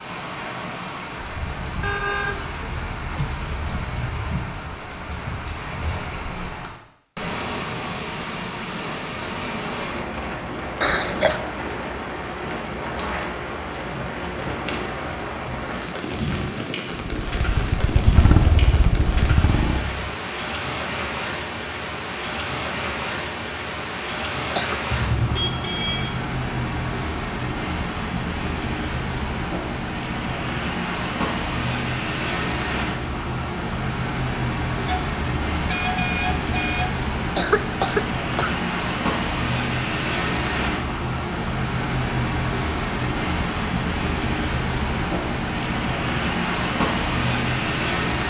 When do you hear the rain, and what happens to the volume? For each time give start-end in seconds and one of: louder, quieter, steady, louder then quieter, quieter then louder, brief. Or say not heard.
0.0-48.2 louder.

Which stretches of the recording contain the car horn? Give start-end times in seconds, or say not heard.
1.8-3.9, 24.9-26.1, 34.9-37.0.